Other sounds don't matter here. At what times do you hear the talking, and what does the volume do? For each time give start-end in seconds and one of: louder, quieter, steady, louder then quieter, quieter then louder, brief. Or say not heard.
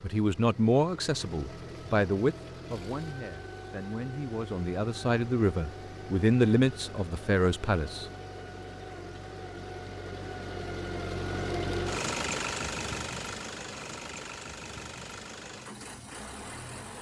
0.0-8.1 quieter then louder.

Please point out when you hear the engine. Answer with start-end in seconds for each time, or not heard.
0.0-16.9.